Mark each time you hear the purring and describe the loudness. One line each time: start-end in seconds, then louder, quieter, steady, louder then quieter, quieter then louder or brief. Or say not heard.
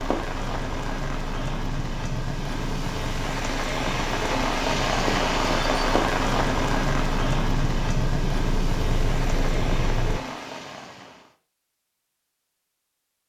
0.0-10.2 louder.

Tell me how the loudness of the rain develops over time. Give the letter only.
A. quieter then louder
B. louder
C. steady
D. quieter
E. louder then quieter
E.